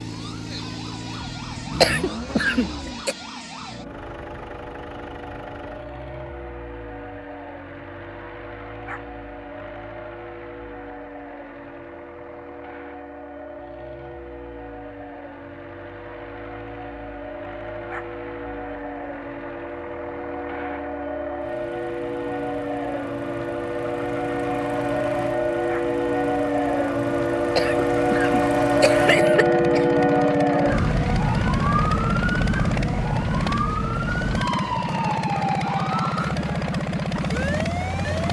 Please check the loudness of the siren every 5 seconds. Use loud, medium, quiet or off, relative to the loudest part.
quiet, quiet, quiet, quiet, medium, loud, loud, medium.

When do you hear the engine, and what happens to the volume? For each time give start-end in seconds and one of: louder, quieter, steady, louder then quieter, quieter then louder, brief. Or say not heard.
0.0-38.2 quieter then louder.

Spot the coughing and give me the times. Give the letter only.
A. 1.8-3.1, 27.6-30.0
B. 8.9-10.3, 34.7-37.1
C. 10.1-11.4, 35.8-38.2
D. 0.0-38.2
A.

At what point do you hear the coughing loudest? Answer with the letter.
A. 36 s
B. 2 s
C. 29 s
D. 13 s
B.